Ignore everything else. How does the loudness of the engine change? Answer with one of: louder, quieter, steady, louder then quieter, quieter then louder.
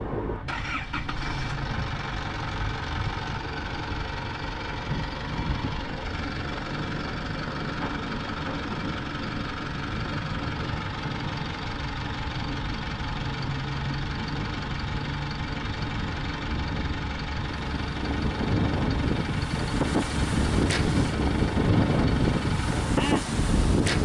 steady.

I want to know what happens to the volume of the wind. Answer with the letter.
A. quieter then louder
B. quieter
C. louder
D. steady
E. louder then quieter
C.